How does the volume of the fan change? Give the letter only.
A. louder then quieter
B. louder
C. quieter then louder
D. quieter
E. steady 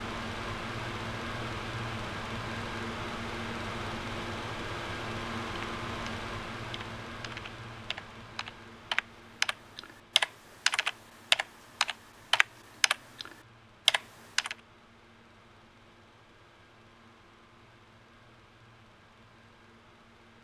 D.